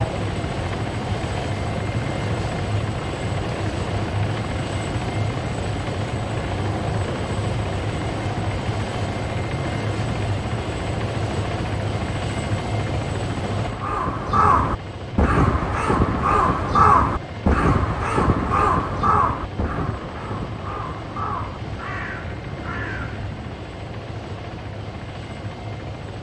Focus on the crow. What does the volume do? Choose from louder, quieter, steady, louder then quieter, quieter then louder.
quieter.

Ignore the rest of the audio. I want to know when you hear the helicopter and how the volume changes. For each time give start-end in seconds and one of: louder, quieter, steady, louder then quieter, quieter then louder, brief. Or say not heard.
0.0-26.1 quieter.